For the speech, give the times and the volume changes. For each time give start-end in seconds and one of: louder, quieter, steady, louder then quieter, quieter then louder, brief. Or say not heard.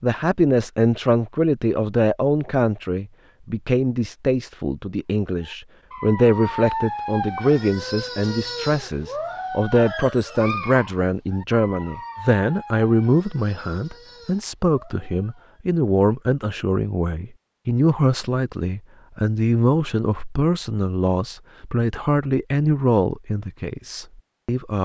0.0-24.8 steady.